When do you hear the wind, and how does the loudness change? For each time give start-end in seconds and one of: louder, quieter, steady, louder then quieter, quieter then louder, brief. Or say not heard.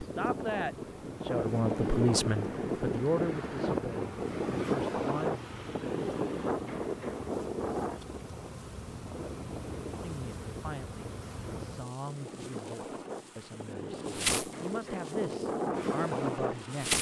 0.0-16.9 quieter then louder.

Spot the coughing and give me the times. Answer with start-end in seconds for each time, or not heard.
not heard.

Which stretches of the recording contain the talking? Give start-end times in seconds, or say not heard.
0.0-5.5, 9.9-16.9.